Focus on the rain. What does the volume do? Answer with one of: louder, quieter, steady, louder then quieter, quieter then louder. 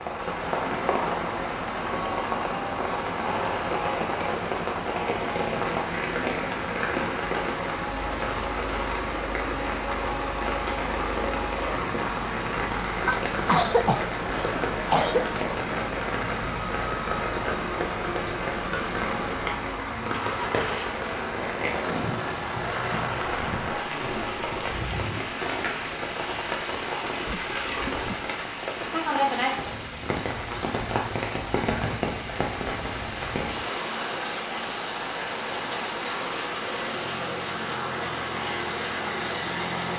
steady.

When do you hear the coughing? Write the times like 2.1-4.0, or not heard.
13.1-15.2, 27.2-28.4.